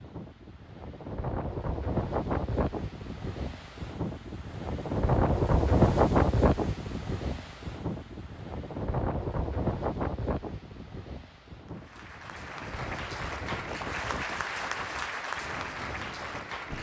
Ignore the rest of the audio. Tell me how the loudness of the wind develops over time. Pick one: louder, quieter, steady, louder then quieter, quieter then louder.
louder then quieter.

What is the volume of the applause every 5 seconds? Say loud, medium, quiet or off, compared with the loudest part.
off, off, loud, loud.